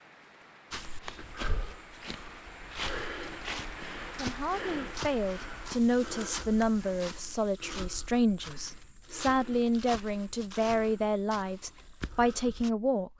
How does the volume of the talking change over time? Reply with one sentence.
The volume of the talking stays about the same.